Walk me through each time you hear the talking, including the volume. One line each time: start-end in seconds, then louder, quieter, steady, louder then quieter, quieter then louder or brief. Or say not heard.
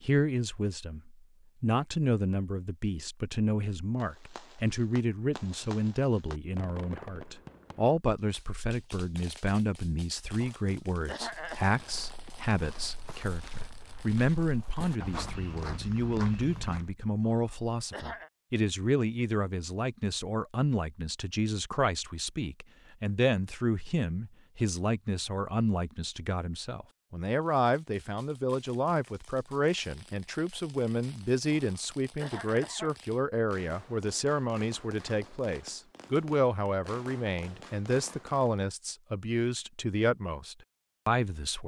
0.0-41.6 steady.